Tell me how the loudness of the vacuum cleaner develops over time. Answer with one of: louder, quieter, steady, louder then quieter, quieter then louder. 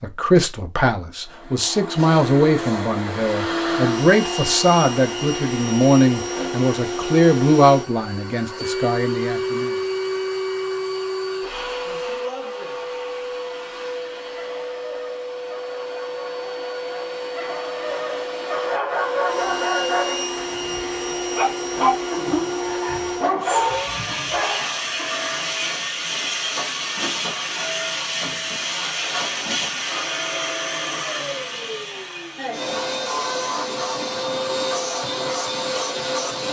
steady.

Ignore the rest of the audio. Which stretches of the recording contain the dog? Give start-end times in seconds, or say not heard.
14.3-25.1.